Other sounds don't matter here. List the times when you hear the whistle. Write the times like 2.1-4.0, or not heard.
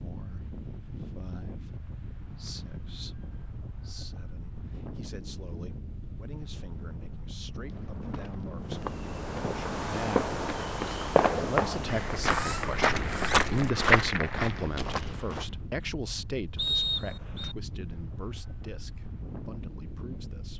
16.6-17.6.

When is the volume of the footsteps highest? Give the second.
14 s.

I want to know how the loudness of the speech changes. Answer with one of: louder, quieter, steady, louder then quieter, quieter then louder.
louder then quieter.